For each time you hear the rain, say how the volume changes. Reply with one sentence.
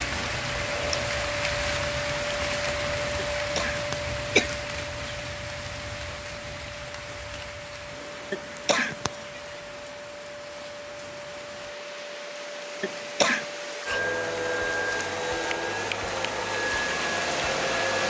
You can hear the rain from 0.0 to 18.0 s, getting quieter then louder.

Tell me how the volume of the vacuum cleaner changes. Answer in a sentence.
The loudness of the vacuum cleaner goes down, then up.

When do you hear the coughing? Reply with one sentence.
The coughing can be heard from 3.1 to 4.5 s, from 8.3 to 9.2 s and from 12.8 to 13.4 s.